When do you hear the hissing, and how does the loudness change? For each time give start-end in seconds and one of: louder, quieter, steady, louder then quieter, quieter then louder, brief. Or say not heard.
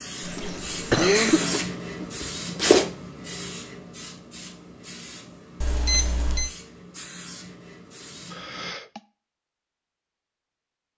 0.0-8.8 quieter.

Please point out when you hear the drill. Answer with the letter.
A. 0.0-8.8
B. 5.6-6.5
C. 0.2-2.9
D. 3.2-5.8
C.